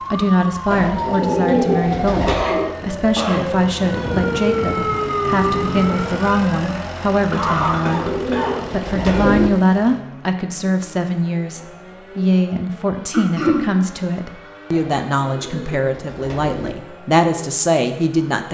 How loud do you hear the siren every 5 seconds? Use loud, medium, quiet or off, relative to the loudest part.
loud, loud, off, off.